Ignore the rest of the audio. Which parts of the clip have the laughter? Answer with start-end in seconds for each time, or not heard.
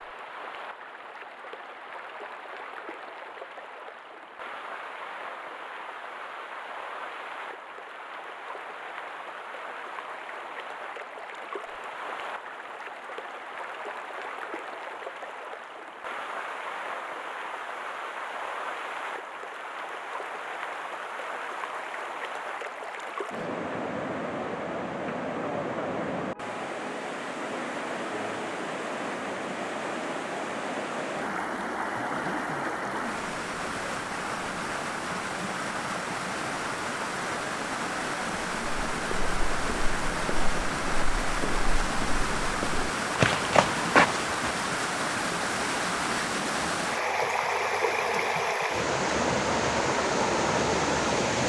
not heard.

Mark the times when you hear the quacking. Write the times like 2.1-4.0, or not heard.
not heard.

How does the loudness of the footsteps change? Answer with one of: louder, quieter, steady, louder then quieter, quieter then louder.
louder.